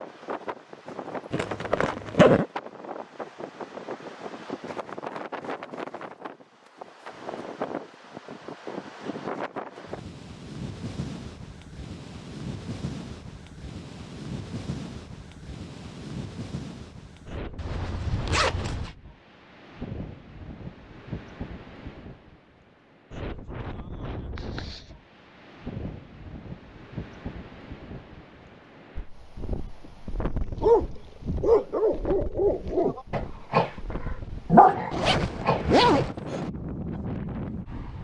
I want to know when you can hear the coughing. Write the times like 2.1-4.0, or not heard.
24.4-24.9.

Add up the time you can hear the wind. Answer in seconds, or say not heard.
38 s.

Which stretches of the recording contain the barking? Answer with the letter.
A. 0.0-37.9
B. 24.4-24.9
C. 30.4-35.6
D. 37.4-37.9
C.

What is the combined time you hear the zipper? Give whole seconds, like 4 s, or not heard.
4 s.